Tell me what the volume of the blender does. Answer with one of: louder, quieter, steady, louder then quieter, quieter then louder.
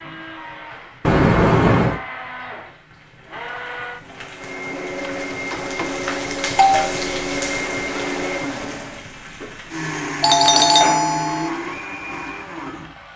louder.